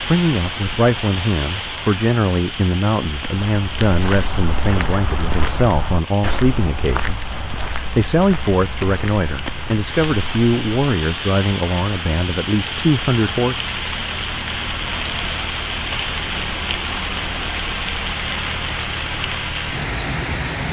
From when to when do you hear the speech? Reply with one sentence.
You can hear the speech from 0.1 to 13.6 s.